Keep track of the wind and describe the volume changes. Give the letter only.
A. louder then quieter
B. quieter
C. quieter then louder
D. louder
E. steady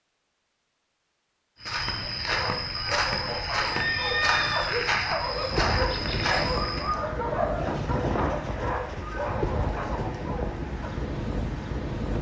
E.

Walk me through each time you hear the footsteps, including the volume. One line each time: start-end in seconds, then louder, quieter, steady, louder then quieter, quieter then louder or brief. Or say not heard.
1.6-7.0 steady.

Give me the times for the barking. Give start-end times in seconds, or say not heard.
1.9-11.1.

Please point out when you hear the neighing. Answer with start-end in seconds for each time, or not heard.
3.7-4.8.